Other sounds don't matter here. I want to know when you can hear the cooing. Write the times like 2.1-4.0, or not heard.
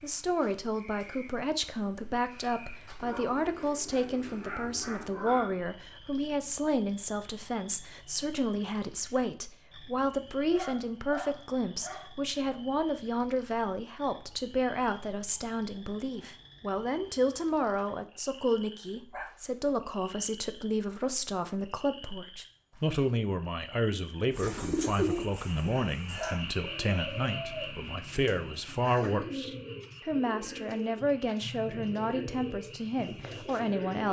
24.3-34.0.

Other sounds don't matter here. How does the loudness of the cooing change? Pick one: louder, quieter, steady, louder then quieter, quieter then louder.
quieter.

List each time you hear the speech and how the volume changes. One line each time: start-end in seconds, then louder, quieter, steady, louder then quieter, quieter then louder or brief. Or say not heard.
0.0-34.0 steady.